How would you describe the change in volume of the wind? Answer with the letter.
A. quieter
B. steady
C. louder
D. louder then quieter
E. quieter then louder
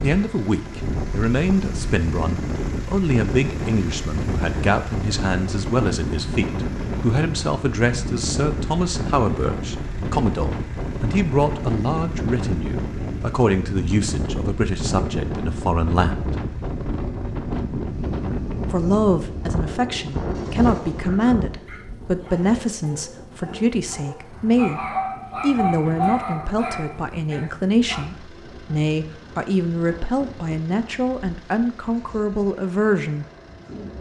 A.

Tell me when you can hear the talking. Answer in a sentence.
The talking can be heard from 0.0 to 16.3 s, from 18.7 to 24.8 s and from 25.4 to 33.2 s.